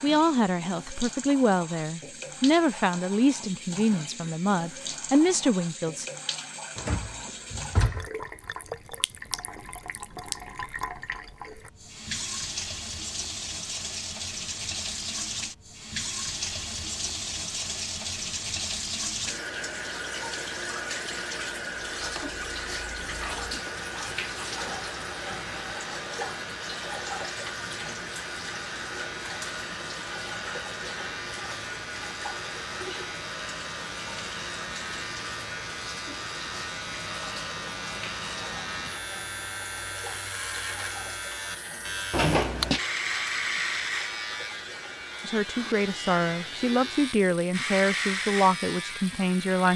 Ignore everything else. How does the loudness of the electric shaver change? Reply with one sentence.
The volume of the electric shaver goes up.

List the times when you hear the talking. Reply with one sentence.
You can hear the talking from 0.0 to 6.0 s and from 45.2 to 49.7 s.